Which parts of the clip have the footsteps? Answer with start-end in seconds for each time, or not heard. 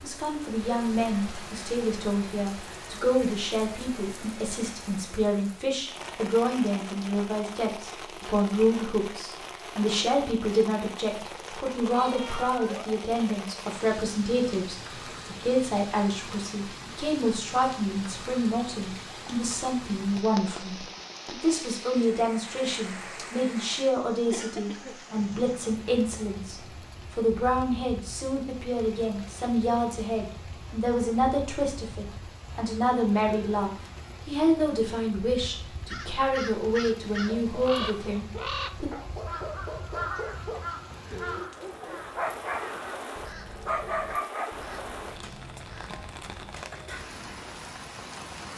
not heard.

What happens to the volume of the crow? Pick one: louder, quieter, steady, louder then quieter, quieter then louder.
quieter.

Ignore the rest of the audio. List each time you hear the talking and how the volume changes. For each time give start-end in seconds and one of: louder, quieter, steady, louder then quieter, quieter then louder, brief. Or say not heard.
0.0-38.9 steady.